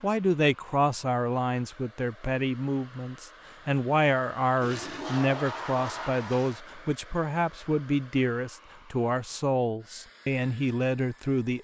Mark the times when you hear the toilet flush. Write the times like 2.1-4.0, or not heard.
4.6-6.6.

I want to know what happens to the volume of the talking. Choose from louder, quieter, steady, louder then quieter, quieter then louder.
steady.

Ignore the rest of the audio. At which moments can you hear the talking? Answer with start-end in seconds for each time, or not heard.
0.0-11.5.